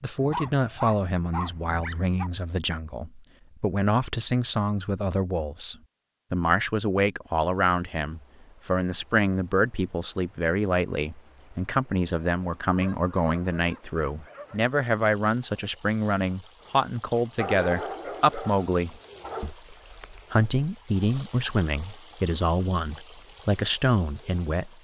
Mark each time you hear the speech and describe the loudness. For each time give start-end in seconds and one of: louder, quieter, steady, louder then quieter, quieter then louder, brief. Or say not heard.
0.0-24.7 steady.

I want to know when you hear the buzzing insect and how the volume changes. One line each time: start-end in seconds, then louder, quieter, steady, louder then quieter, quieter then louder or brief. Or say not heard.
not heard.